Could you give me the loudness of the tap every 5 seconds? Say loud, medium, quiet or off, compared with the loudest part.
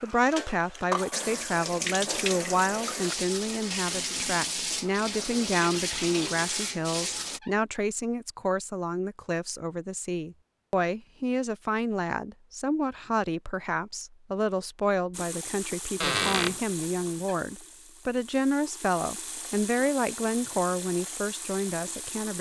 loud, loud, off, medium, medium.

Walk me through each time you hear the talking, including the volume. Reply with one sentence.
You can hear the talking from 0.0 to 22.3 s, at a steady volume.